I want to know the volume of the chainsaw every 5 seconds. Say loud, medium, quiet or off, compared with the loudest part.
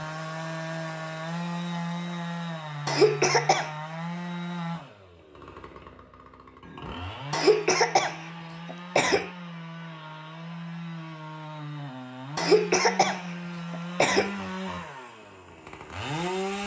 loud, medium, loud, loud.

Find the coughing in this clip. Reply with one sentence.
The coughing can be heard from 2.9 to 3.7 s, from 7.3 to 9.3 s and from 12.3 to 14.3 s.